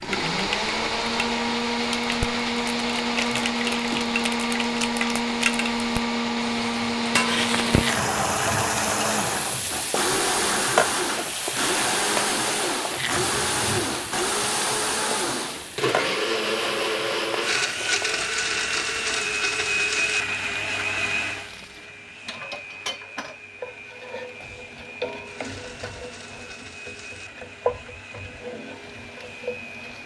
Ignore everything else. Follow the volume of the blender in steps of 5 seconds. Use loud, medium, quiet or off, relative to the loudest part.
loud, loud, loud, loud, medium, quiet.